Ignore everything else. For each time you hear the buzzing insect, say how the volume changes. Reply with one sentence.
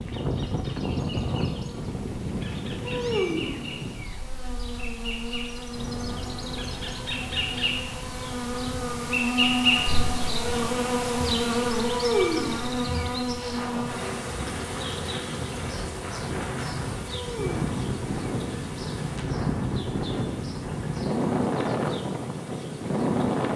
You can hear the buzzing insect from 0.0 to 23.5 s, getting louder then quieter.